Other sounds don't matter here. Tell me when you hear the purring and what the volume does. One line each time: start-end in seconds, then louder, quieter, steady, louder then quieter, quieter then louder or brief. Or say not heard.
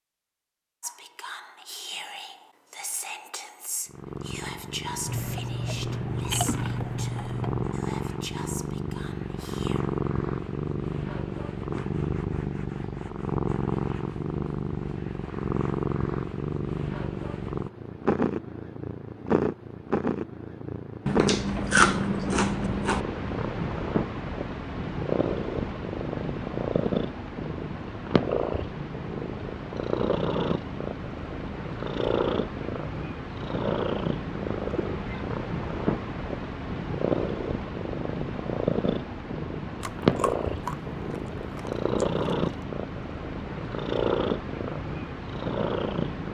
3.9-46.3 steady.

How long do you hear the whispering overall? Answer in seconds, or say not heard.
9 s.